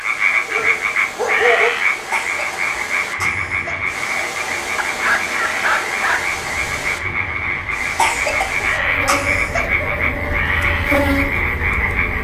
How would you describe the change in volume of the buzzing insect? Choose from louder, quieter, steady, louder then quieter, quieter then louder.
louder.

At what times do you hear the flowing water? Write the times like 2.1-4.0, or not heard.
0.0-8.8.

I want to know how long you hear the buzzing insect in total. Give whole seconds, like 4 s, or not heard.
6 s.